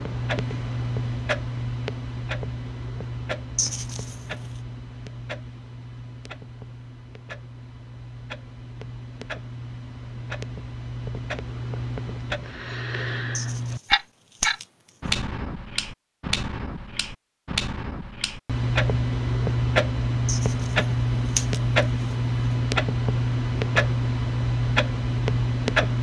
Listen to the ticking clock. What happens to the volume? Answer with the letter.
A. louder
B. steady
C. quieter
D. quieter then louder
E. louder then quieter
D.